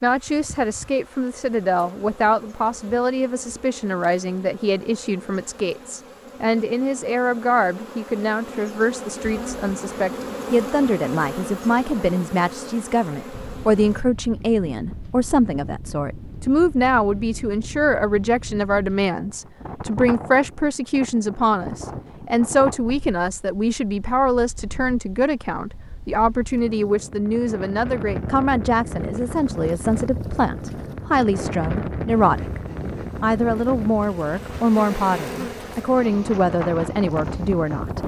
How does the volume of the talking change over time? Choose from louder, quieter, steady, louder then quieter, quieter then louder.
steady.